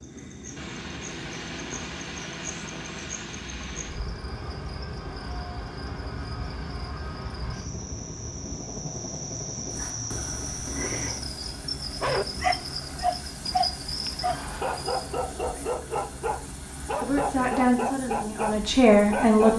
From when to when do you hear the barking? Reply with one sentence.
You can hear the barking from 12.0 to 19.5 s.